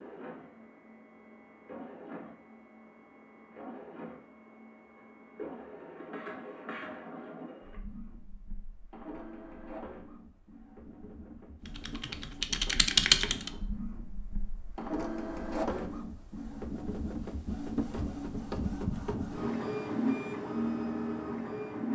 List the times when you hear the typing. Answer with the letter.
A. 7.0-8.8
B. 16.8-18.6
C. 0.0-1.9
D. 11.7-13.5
D.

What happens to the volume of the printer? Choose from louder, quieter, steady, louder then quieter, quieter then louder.
louder.